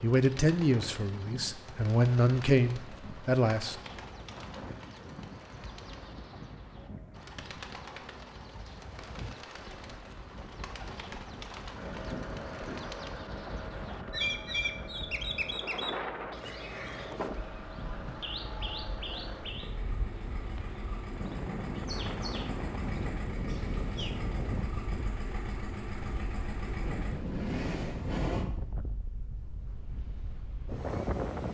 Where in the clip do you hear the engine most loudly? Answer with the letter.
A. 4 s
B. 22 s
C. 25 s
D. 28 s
D.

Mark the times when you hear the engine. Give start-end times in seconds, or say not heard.
11.7-28.4.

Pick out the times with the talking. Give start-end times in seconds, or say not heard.
0.0-3.8.